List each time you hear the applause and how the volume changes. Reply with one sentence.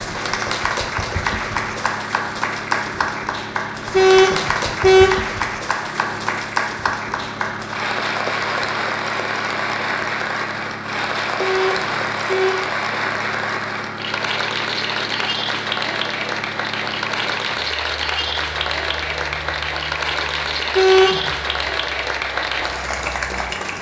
The applause can be heard from 0.0 to 23.7 s, at a steady volume.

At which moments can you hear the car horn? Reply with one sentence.
The car horn can be heard from 3.9 to 5.3 s, from 11.4 to 12.7 s and from 20.8 to 21.4 s.